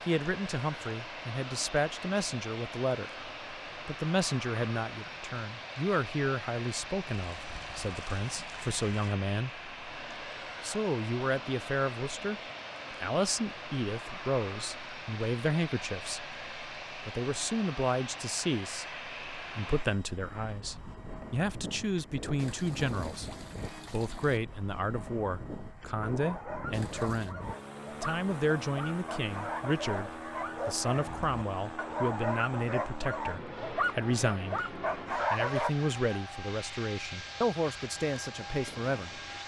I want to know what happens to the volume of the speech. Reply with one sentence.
The loudness of the speech stays about the same.